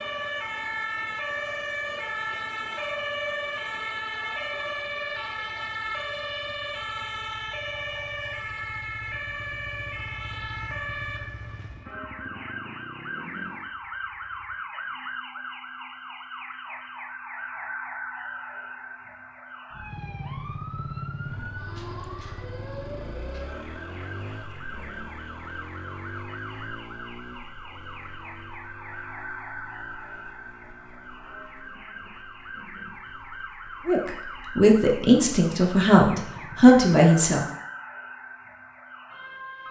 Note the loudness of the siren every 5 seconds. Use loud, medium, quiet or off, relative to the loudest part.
loud, loud, medium, medium, medium, medium, medium, medium.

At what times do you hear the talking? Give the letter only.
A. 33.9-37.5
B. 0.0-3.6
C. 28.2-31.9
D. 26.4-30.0
A.